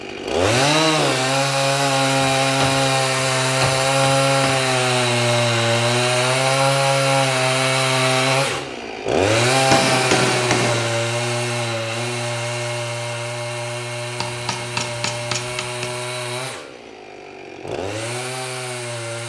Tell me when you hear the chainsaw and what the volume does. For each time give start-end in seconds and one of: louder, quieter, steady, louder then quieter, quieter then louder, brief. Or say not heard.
0.0-19.2 quieter.